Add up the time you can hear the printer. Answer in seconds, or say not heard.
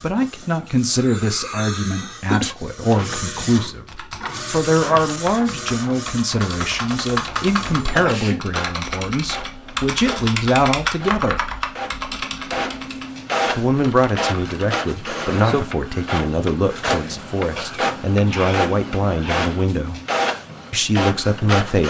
22 s.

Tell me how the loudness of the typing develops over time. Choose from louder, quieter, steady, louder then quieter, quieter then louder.
louder then quieter.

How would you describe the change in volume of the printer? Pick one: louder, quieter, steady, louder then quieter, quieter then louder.
louder.